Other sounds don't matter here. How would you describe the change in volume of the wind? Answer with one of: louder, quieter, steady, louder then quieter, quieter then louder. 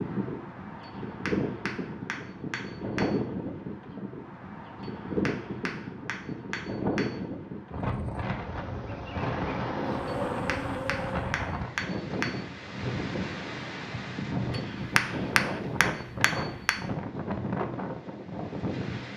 steady.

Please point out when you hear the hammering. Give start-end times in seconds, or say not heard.
0.8-3.2, 4.8-7.2, 10.3-12.4, 14.5-16.8.